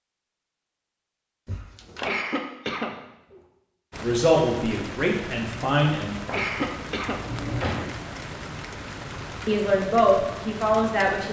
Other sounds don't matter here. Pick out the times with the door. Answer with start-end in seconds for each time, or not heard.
1.4-2.1, 7.0-8.0.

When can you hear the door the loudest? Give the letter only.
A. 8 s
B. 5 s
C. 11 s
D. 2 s
A.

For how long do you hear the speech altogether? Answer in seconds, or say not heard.
4 s.